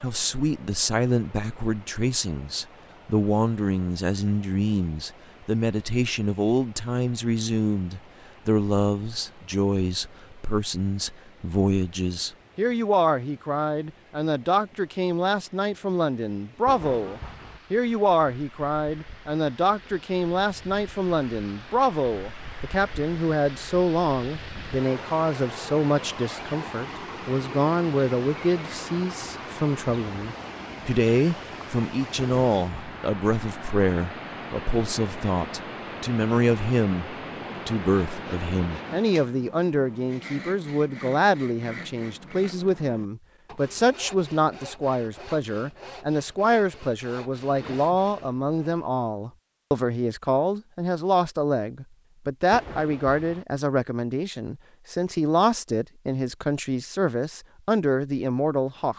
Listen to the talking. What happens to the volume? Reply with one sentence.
The volume of the talking stays about the same.